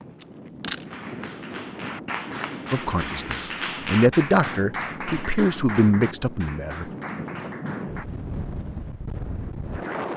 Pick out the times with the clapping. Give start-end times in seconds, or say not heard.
0.8-8.1.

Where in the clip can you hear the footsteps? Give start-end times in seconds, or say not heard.
not heard.